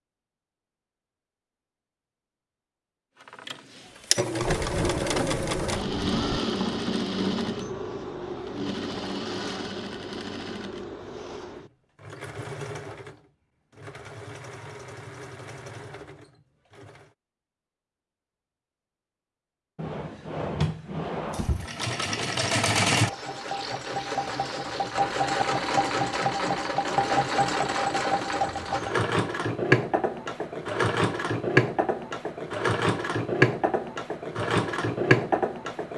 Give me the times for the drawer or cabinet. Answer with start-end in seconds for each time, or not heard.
4.4-6.4, 19.8-21.7.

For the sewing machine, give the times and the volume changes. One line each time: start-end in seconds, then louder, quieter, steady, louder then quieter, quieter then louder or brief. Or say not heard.
3.2-17.1 quieter
21.3-35.9 steady.